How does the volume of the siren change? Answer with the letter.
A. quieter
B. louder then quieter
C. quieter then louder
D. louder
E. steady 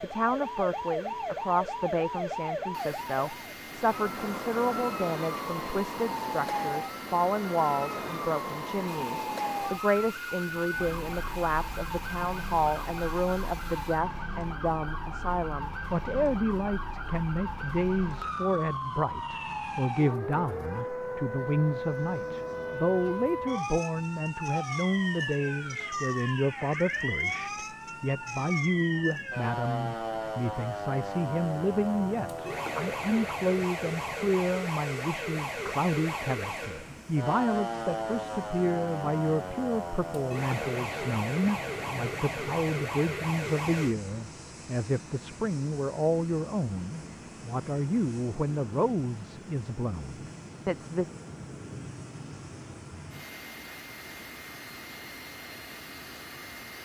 E.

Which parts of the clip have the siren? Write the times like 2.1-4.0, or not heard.
0.0-44.0.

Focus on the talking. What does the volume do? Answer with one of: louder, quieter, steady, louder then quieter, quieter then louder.
steady.